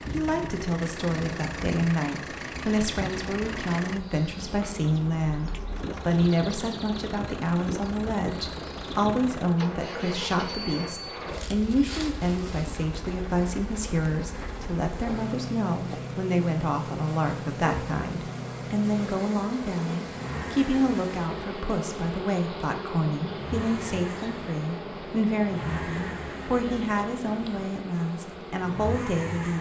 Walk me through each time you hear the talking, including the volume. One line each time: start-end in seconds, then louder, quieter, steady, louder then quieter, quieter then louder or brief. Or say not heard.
0.0-29.5 steady.